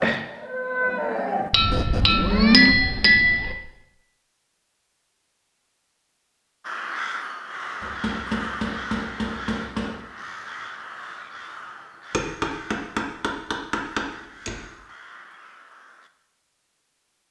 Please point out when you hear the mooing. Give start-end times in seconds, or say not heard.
0.0-2.8.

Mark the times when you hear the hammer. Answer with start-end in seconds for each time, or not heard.
1.5-3.5, 7.8-9.9, 12.1-14.6.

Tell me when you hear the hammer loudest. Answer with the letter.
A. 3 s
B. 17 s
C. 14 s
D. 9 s
A.